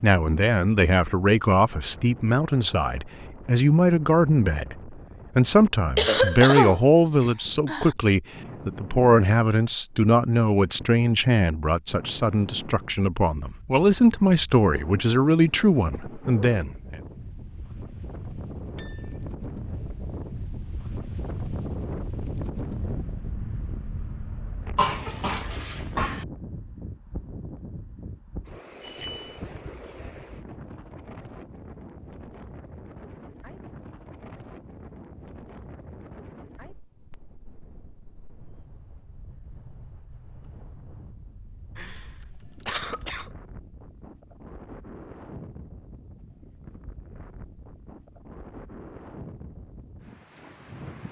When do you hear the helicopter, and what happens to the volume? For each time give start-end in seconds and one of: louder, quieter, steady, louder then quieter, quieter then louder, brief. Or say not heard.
not heard.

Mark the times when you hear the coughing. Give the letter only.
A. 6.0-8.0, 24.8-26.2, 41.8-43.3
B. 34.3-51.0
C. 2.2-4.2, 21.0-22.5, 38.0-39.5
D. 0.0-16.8
A.